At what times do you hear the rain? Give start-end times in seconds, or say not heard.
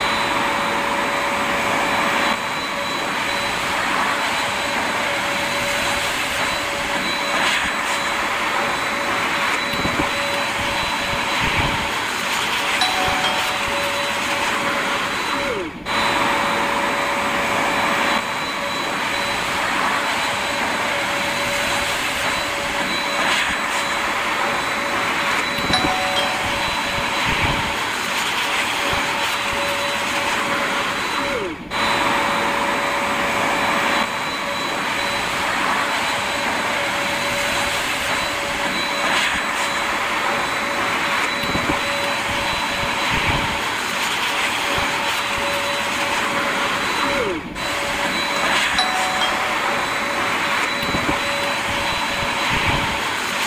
not heard.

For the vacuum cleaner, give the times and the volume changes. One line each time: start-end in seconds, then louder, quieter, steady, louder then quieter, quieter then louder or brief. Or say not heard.
0.0-53.4 steady.